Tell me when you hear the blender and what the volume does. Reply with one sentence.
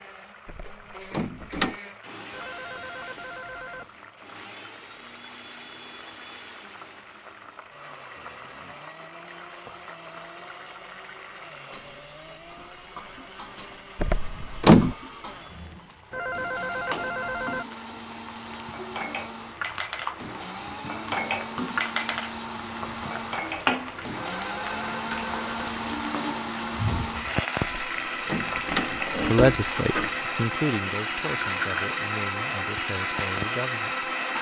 The blender can be heard from 0.0 to 34.3 s, getting louder.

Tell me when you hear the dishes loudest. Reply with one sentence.
The volume of the dishes peaks at 22 seconds.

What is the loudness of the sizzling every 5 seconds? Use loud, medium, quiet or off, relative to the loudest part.
quiet, quiet, quiet, medium, loud, loud, loud.